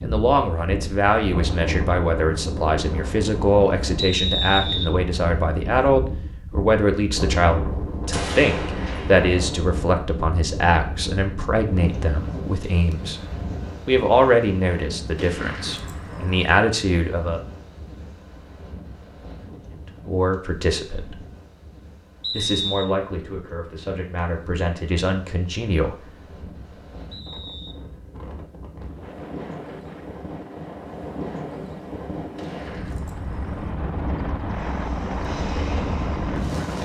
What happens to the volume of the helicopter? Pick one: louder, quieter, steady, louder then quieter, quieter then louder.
louder.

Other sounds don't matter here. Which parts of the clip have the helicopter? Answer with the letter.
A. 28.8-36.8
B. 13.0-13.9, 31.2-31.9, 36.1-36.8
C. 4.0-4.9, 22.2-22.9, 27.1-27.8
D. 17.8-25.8
A.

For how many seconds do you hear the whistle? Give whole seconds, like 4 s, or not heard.
2 s.